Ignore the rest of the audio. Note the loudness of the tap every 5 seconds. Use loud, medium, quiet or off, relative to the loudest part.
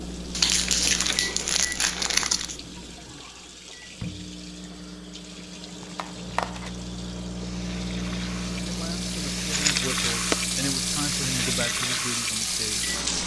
quiet, medium, loud.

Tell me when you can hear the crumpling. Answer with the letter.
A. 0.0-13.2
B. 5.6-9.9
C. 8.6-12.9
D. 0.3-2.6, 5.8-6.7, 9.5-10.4
D.